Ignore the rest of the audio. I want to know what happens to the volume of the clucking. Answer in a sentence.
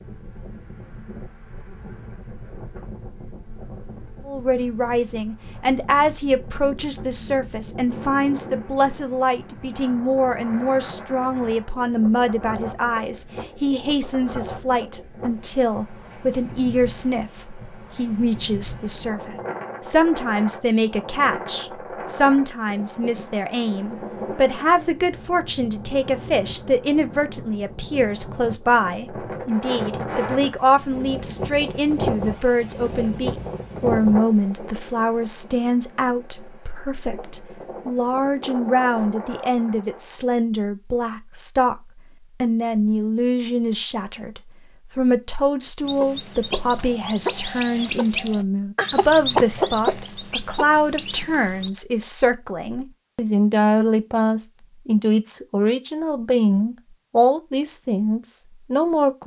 The loudness of the clucking goes up, then down.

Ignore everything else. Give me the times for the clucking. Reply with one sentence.
The clucking can be heard from 45.9 to 51.7 s.